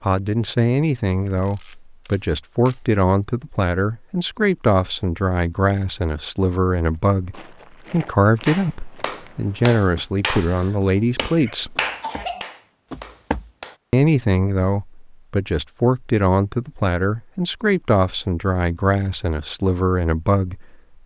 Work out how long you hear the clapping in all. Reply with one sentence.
You can hear the clapping for 5 seconds altogether.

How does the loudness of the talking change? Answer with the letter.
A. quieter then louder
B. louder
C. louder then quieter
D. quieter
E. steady
E.